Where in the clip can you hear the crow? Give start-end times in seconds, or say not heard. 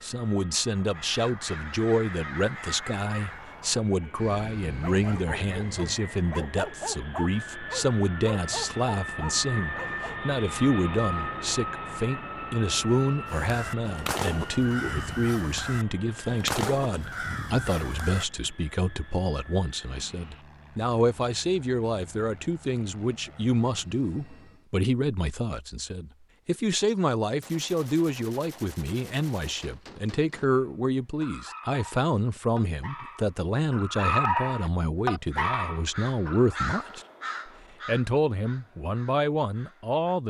0.7-6.0, 13.2-18.5, 35.1-40.2.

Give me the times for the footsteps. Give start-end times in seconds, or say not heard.
not heard.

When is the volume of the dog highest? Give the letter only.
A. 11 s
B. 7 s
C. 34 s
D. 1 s
C.